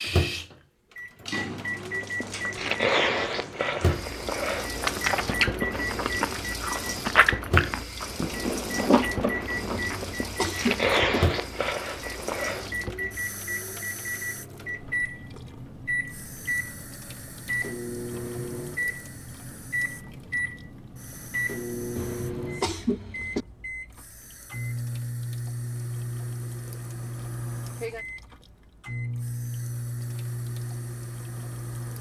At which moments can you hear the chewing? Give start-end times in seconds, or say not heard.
1.9-12.9.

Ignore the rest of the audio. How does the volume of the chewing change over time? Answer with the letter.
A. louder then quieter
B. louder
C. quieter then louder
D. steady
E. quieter
D.